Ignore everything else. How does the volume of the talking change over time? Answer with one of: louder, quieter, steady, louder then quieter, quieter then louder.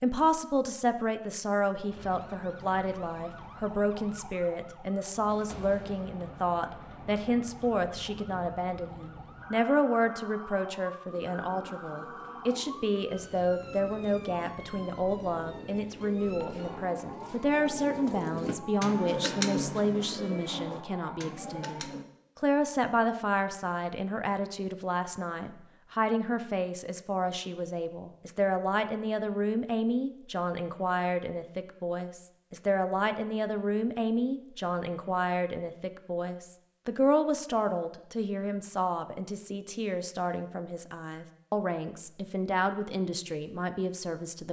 steady.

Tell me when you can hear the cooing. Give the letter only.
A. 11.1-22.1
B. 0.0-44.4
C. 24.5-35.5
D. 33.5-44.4
A.